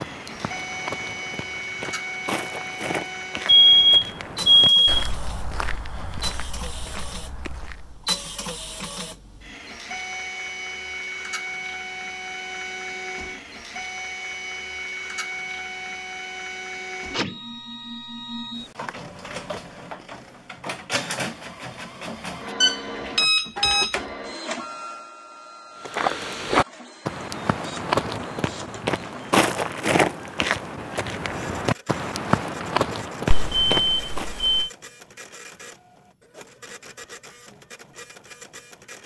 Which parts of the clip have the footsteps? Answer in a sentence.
You can hear the footsteps from 0.0 to 8.1 s and from 25.8 to 34.3 s.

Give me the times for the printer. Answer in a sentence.
You can hear the printer from 0.0 to 39.0 s.